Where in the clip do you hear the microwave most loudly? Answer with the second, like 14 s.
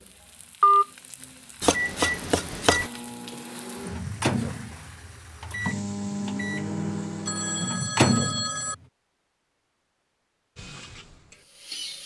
8 s.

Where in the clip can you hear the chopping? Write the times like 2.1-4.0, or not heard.
1.6-2.9.